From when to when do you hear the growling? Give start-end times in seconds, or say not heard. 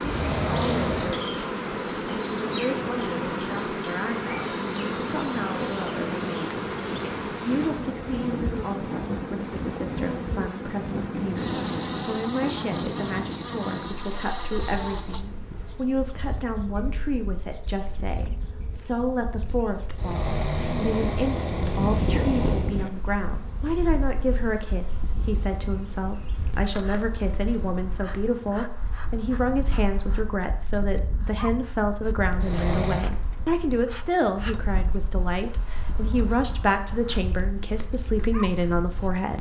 0.0-1.2, 19.9-22.7, 32.4-33.0.